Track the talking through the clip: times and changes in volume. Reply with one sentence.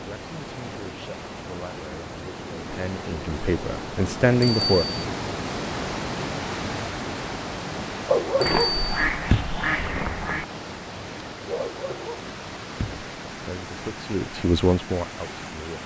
You can hear the talking from 0.0 to 4.8 s, getting louder; and briefly from 12.9 to 15.8 s.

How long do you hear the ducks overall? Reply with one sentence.
You can hear the ducks for 2 seconds altogether.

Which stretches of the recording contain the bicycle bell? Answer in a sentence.
You can hear the bicycle bell from 4.4 to 5.0 s and from 8.4 to 9.1 s.